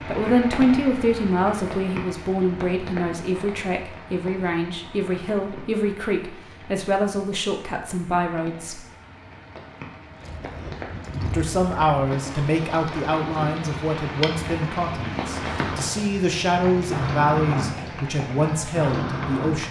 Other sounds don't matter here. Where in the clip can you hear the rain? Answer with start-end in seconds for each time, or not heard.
0.0-19.6.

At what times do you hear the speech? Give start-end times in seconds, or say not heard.
0.1-8.8, 11.3-19.6.